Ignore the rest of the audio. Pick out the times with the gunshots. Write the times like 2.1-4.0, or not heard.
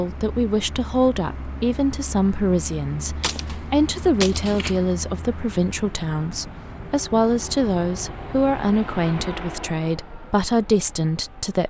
3.2-4.8.